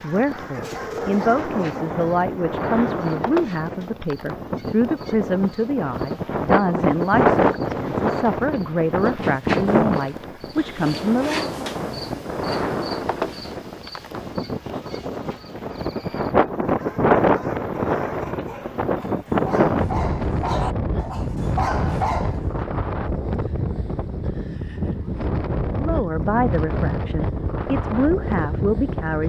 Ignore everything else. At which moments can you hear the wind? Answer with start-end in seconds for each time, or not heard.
0.0-29.2.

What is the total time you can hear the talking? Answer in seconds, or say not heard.
15 s.